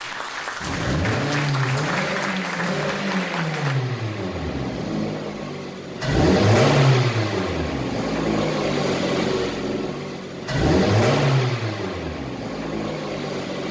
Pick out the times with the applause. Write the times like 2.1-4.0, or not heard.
0.0-3.8.